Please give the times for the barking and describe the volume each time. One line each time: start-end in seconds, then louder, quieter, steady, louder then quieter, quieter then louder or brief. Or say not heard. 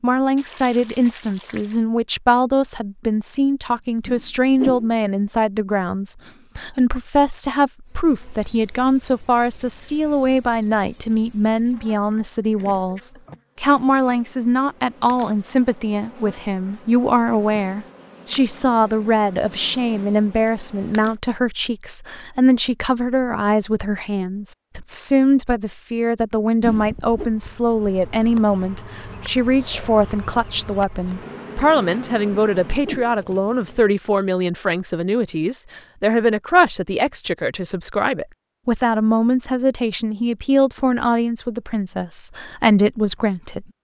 not heard.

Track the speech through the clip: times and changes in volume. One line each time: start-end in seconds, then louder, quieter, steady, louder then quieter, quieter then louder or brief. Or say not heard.
0.0-43.6 steady.